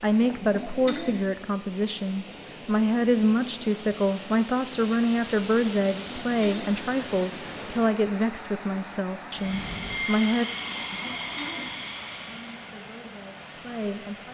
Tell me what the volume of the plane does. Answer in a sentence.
The volume of the plane goes down.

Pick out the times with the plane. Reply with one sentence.
The plane can be heard from 9.2 to 14.3 s.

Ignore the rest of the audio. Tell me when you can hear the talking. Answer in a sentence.
The talking can be heard from 0.0 to 10.4 s and from 12.2 to 14.3 s.